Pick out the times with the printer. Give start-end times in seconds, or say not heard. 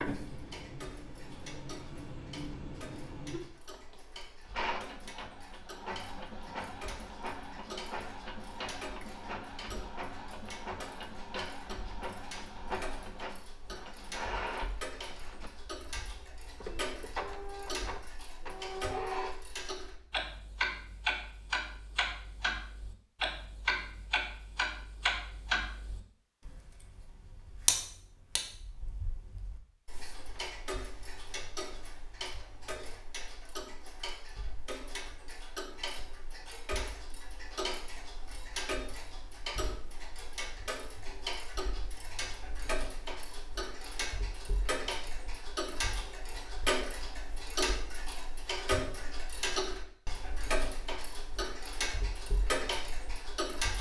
0.0-20.2.